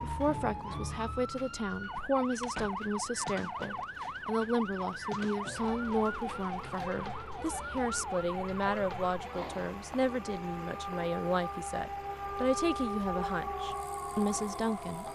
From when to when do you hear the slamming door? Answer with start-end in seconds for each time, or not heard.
2.4-2.9.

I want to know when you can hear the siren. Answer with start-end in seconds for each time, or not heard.
0.0-15.0.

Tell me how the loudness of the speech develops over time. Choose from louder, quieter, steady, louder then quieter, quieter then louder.
steady.